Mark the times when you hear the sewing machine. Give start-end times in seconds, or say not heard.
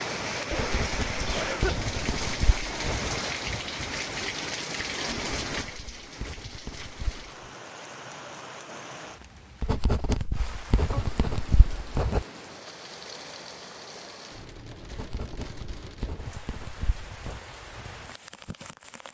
not heard.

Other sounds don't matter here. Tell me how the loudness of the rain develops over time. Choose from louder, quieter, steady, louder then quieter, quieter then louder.
quieter.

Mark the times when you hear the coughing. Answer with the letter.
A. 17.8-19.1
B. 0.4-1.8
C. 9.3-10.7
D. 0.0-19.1
B.